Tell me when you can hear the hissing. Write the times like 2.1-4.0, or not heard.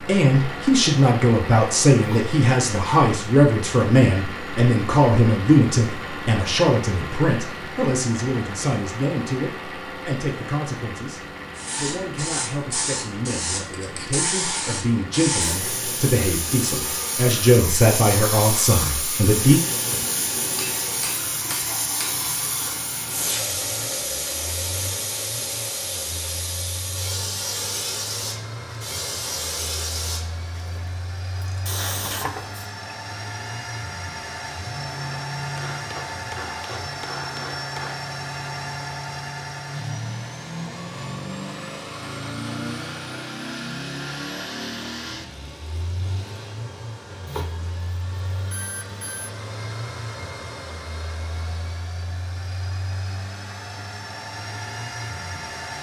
11.6-32.5.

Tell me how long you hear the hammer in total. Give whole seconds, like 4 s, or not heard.
4 s.